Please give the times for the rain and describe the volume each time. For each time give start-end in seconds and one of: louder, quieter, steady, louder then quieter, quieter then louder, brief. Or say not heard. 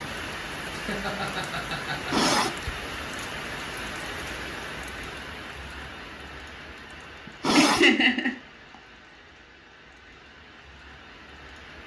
0.0-11.8 quieter.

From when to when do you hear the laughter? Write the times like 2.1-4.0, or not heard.
0.7-2.7, 7.2-8.3.